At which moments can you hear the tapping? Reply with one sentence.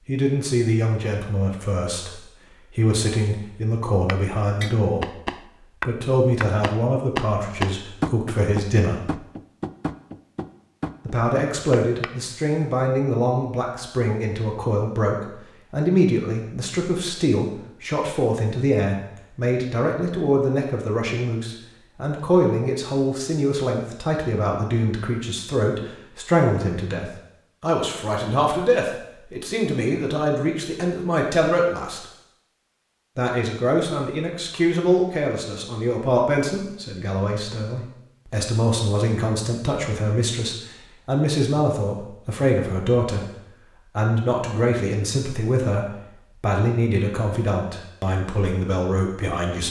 You can hear the tapping from 4.0 to 12.3 s.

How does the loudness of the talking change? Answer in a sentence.
The loudness of the talking stays about the same.